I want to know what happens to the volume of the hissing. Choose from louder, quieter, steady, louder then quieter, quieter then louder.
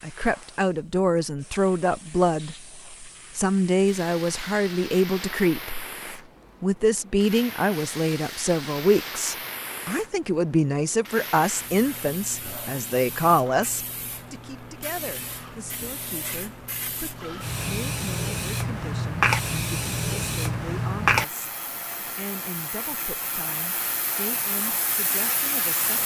louder.